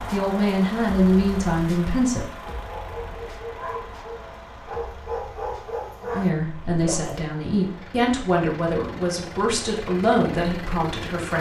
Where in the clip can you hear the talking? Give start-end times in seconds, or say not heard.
0.0-2.2, 6.0-11.3.